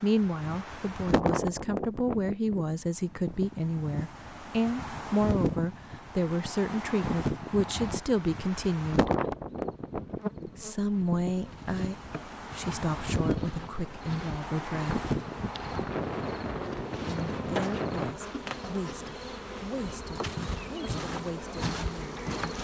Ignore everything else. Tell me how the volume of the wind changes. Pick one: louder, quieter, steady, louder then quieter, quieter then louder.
steady.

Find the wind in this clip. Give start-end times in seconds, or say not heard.
0.0-18.1.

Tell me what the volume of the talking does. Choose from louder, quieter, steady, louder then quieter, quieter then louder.
quieter.